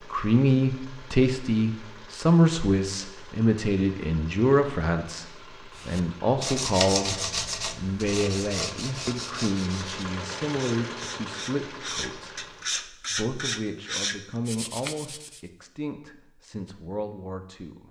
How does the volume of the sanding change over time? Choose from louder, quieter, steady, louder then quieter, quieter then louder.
quieter then louder.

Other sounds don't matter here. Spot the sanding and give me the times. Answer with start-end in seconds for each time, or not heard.
5.8-15.4.